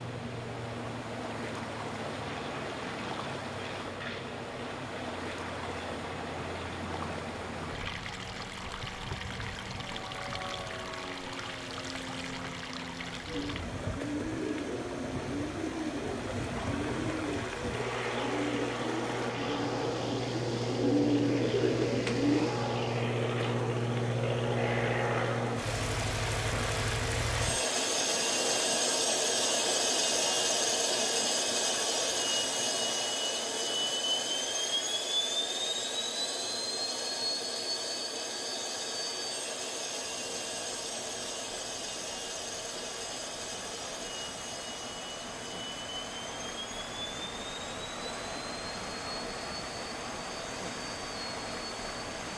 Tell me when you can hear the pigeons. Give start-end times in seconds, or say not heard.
13.2-22.5.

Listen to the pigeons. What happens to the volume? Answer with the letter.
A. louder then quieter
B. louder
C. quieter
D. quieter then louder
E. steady
B.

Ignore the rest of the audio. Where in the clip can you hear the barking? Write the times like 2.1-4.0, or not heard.
not heard.